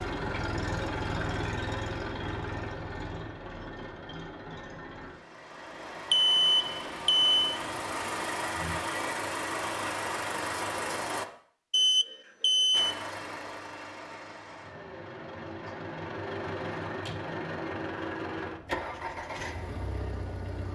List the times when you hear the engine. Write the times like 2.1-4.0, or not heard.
0.0-11.2, 12.7-20.7.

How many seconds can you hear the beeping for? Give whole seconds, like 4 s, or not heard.
3 s.